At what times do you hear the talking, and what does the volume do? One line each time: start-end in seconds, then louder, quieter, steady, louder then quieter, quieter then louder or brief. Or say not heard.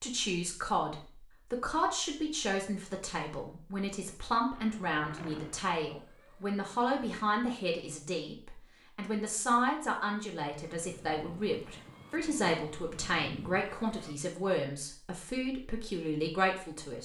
0.0-17.0 steady.